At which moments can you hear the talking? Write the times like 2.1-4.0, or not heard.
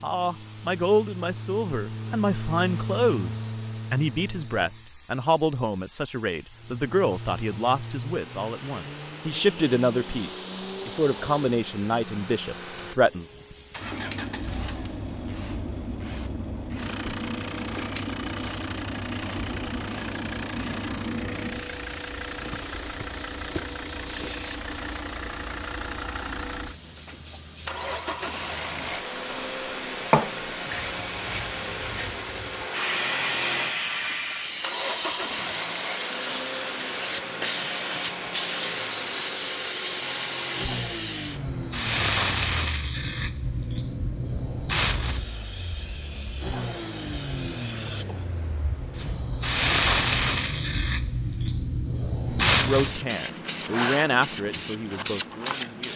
0.0-13.2, 52.6-55.9.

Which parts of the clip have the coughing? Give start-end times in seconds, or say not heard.
not heard.